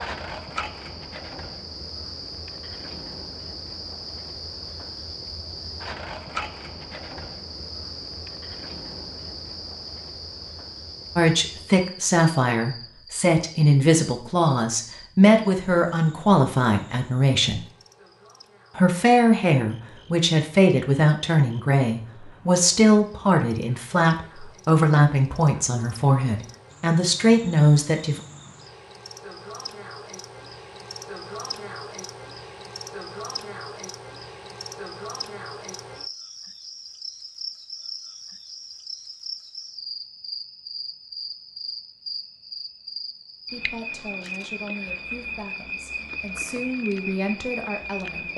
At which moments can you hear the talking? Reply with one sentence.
You can hear the talking from 11.2 to 17.6 s, from 18.8 to 28.2 s and from 43.5 to 48.3 s.